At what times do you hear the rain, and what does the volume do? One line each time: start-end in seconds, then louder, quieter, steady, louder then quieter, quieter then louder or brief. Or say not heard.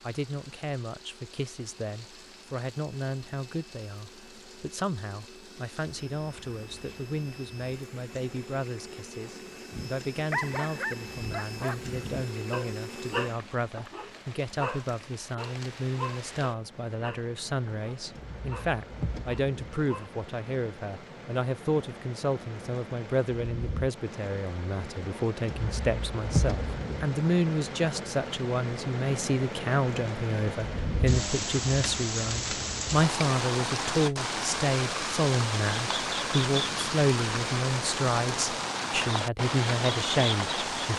0.0-40.9 louder.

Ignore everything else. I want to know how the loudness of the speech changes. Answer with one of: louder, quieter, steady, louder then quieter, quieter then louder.
louder.